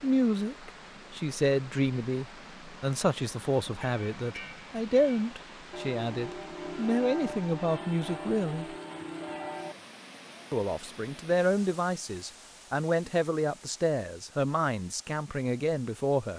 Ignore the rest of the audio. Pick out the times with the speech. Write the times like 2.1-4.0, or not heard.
0.0-8.8, 10.5-16.3.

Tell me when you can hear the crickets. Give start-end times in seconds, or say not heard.
not heard.